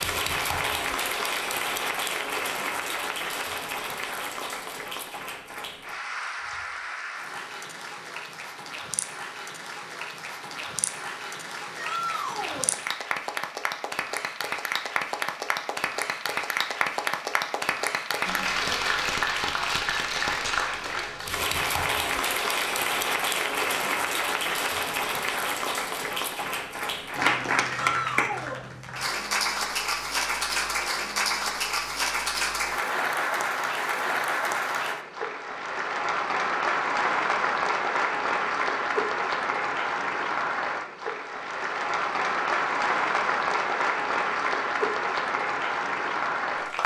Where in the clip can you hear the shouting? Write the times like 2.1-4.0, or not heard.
11.8-12.8, 27.8-28.6.